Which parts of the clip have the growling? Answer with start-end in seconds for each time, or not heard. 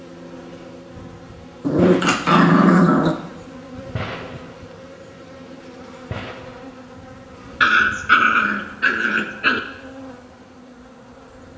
1.6-3.1, 7.6-9.6.